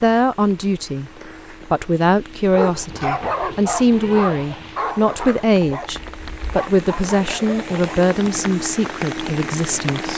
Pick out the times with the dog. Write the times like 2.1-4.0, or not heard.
2.5-7.8.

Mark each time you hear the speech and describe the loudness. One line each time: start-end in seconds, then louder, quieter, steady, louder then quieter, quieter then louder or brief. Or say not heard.
0.0-10.1 steady.